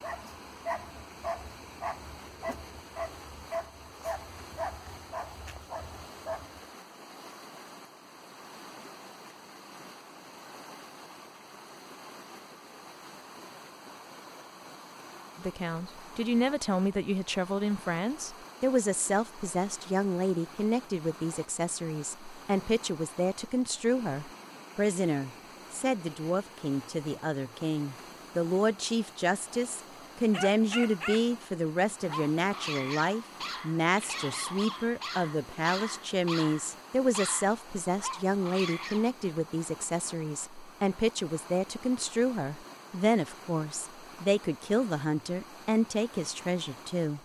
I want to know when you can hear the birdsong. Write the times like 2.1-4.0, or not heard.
not heard.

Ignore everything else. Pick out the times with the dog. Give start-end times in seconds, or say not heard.
0.0-6.6, 30.3-31.3, 32.0-39.1.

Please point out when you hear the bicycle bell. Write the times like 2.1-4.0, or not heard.
not heard.